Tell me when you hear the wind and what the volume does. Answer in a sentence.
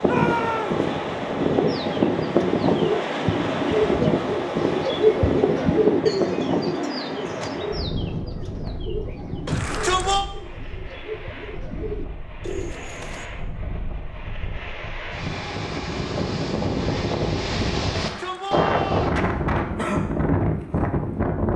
The wind can be heard from 0.0 to 21.5 s, getting quieter then louder.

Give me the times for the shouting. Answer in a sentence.
The shouting can be heard from 0.0 to 0.8 s, from 9.4 to 10.2 s and from 17.9 to 19.1 s.